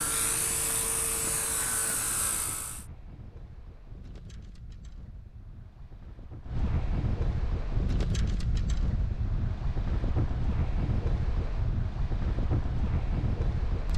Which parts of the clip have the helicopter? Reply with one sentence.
You can hear the helicopter from 0.0 to 2.9 s.